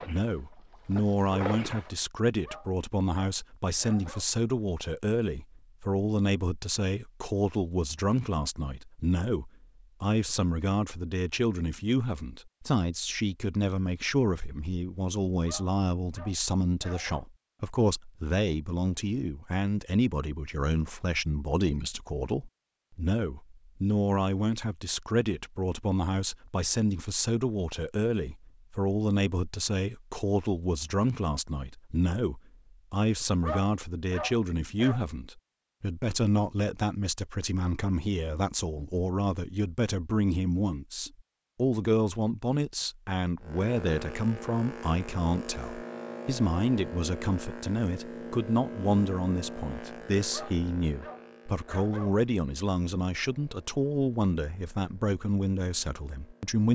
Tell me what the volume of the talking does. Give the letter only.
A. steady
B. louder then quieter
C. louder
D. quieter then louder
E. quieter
A.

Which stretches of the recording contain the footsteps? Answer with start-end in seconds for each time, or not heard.
not heard.